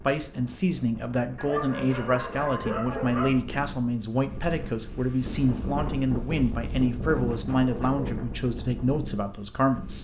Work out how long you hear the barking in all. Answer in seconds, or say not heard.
3 s.